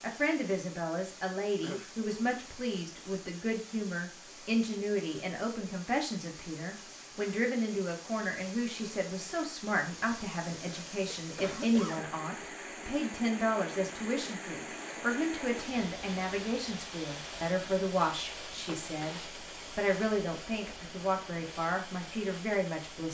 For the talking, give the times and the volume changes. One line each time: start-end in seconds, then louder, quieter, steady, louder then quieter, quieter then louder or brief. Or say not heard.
0.0-23.0 steady.